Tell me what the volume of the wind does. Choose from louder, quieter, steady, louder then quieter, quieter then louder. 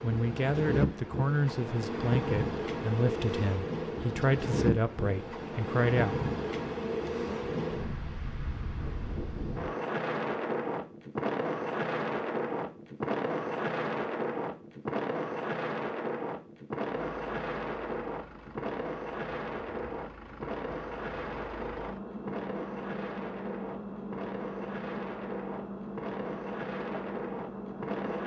quieter.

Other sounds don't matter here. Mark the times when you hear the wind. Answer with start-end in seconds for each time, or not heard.
0.0-28.2.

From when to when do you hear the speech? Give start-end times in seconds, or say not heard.
0.0-6.2.